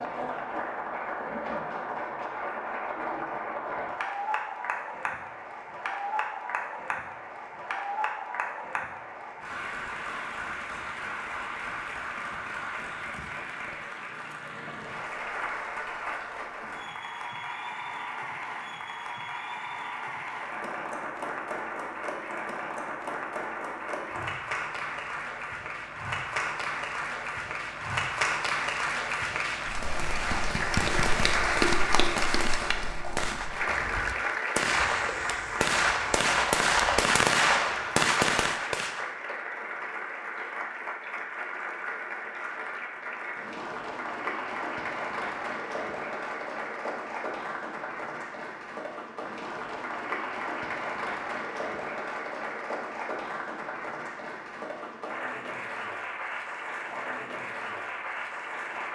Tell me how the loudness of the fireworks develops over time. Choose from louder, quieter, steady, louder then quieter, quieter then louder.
louder.